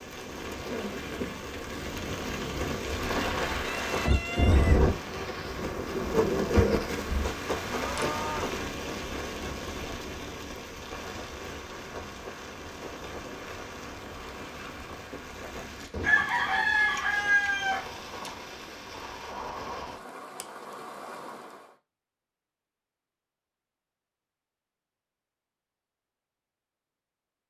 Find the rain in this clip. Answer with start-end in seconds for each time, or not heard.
0.0-21.8.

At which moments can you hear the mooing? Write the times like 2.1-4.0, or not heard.
7.0-8.6.